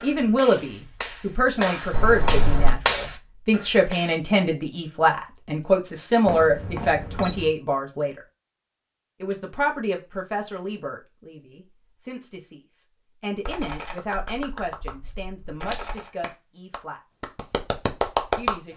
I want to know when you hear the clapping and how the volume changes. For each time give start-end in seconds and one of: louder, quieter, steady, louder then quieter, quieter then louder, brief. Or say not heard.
0.0-4.2 louder then quieter
13.8-15.0 brief
15.7-18.6 brief.